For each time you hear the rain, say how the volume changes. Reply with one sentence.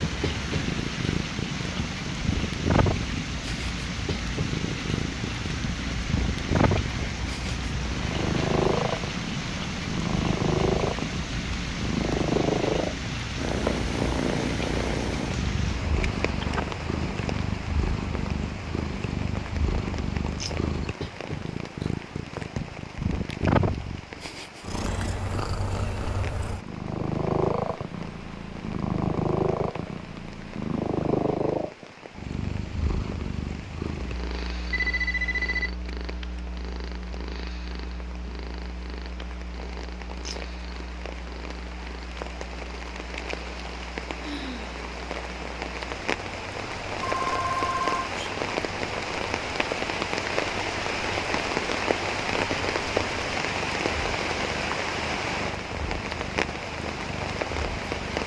You can hear the rain from 0.0 to 58.2 s, getting quieter then louder.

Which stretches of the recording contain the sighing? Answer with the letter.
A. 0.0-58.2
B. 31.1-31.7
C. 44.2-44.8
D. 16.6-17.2
C.